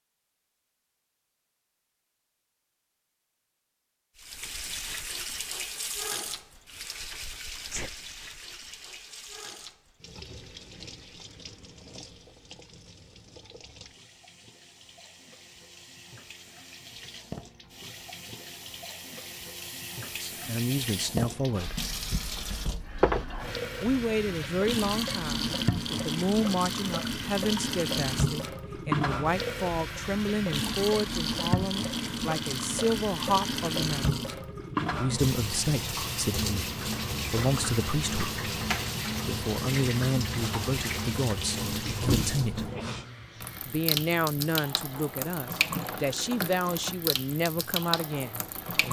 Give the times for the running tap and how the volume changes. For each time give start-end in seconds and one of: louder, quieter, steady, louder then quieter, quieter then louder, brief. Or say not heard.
4.2-48.8 louder.